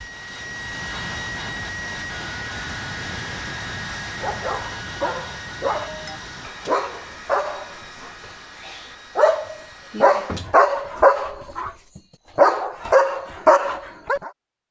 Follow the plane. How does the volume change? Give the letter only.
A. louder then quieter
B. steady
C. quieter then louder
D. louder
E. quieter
E.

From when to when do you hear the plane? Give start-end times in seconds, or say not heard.
0.0-10.4.